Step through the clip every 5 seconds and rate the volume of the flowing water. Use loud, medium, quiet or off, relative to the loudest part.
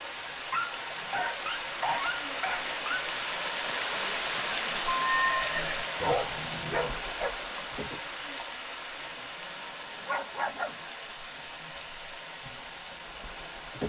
loud, loud, medium.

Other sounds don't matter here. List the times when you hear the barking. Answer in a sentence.
The barking can be heard from 0.5 to 3.0 s, from 5.5 to 7.3 s and from 10.1 to 11.8 s.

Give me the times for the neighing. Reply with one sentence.
You can hear the neighing from 4.8 to 5.9 s.